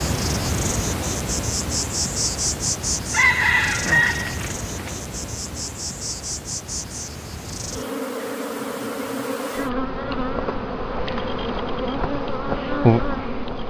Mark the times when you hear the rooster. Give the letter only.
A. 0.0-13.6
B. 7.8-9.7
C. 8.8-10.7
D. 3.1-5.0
D.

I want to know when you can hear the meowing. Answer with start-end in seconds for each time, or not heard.
not heard.